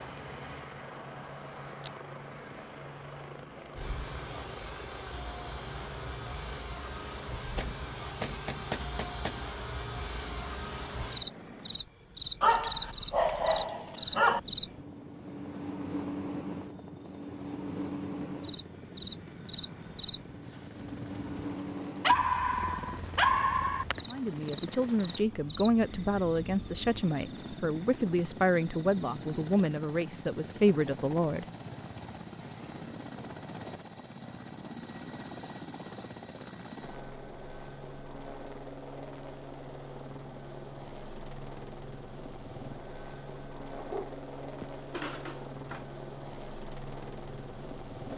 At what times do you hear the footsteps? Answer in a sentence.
You can't hear the footsteps here.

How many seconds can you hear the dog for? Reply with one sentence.
The dog can be heard for 6 seconds in total.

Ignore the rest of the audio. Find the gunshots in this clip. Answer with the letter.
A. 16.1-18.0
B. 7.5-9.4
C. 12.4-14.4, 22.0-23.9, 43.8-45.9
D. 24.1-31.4
B.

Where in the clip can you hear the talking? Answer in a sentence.
The talking can be heard from 24.1 to 31.4 s.